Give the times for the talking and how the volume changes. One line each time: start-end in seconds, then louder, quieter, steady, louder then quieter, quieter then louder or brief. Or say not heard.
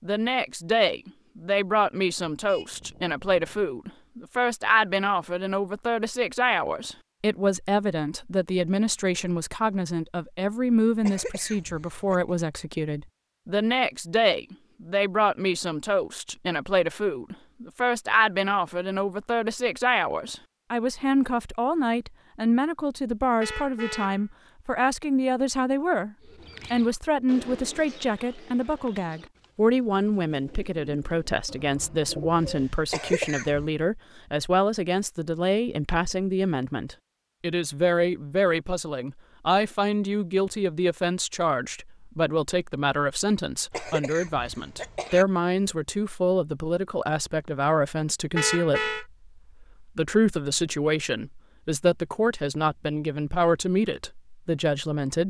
0.0-55.2 steady.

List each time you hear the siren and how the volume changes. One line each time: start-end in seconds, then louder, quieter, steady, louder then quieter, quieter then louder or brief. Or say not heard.
not heard.